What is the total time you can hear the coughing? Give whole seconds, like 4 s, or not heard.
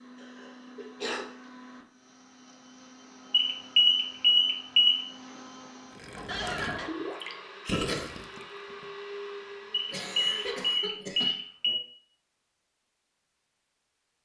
3 s.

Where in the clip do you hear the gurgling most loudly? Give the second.
8 s.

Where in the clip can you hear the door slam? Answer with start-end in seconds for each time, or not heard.
not heard.